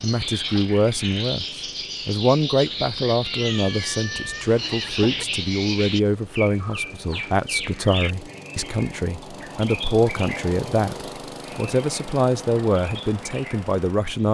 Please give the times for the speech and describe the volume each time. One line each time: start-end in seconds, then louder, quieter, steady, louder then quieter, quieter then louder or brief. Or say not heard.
0.0-14.2 steady.